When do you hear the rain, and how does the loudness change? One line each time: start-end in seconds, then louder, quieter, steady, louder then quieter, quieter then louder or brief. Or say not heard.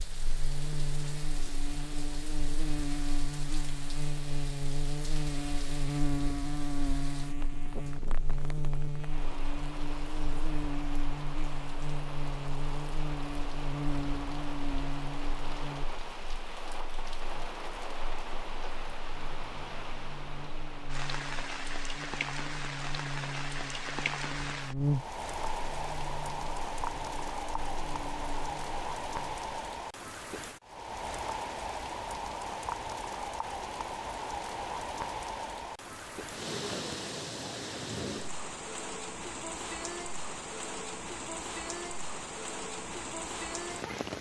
0.0-44.1 louder.